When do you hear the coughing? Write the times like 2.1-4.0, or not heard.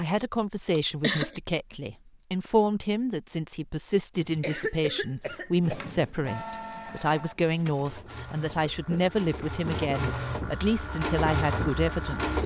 0.8-1.4, 4.2-6.0, 8.7-10.2.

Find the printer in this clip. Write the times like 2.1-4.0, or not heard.
5.6-12.4.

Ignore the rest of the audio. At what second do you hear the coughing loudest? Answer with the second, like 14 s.
1 s.